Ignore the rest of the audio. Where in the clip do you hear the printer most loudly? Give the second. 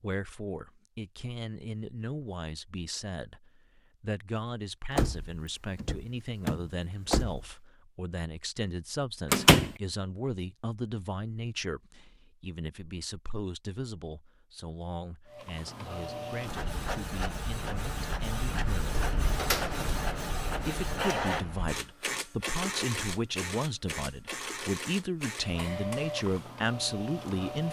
21 s.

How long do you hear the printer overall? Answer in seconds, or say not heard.
12 s.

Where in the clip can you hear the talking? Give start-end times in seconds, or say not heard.
0.0-19.1, 20.6-27.6.